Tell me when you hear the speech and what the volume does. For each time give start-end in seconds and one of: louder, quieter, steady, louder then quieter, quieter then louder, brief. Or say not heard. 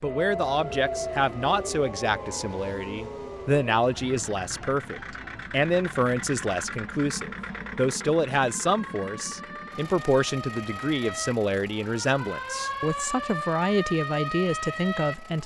0.0-15.4 steady.